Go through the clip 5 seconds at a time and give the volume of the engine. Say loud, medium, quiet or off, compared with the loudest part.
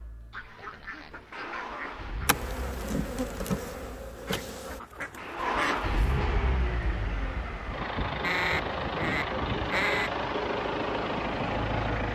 quiet, loud, loud.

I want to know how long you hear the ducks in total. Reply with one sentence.
You can hear the ducks for 6 seconds altogether.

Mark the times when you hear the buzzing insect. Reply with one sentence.
The buzzing insect can be heard from 2.2 to 4.8 s.